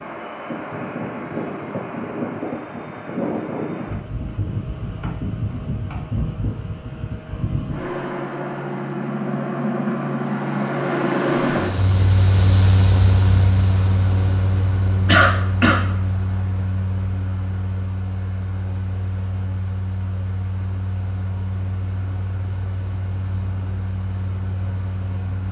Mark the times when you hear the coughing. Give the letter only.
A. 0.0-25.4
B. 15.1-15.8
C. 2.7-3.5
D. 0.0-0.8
B.